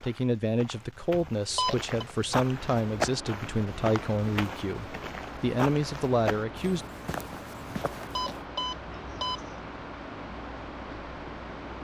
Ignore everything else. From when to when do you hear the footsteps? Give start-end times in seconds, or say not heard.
0.0-8.4.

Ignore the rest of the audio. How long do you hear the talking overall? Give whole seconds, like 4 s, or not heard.
7 s.